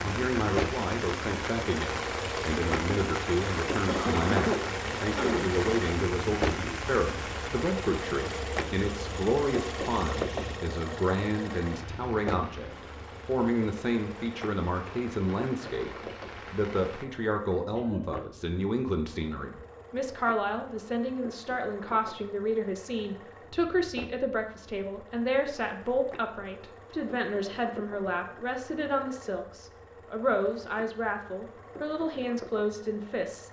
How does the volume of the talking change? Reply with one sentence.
The loudness of the talking stays about the same.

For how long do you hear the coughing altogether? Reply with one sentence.
The coughing can be heard for 2 seconds in total.